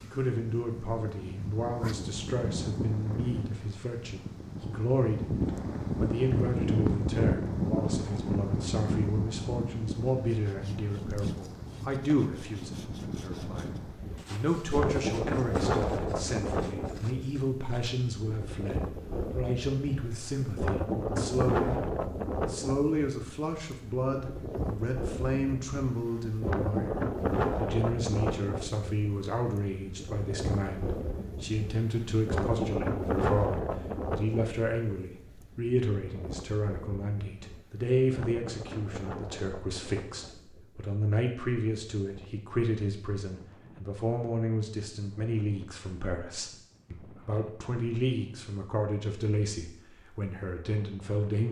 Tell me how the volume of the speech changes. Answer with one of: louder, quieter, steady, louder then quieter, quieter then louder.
steady.